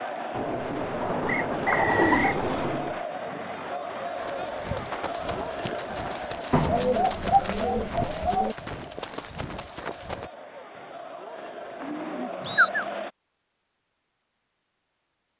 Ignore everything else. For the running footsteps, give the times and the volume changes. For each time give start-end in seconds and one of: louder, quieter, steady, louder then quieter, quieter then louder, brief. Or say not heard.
4.2-10.3 steady.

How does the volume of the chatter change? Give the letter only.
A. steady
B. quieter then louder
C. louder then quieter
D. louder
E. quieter
B.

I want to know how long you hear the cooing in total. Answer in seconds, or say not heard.
6 s.